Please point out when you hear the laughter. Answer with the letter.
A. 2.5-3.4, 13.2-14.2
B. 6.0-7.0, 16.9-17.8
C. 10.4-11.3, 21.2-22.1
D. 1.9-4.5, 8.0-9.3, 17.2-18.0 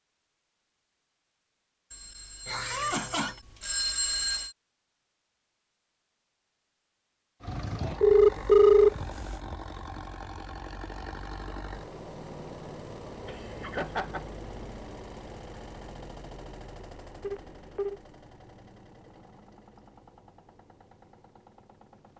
A.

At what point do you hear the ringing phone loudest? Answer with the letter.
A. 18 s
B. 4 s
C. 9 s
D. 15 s
C.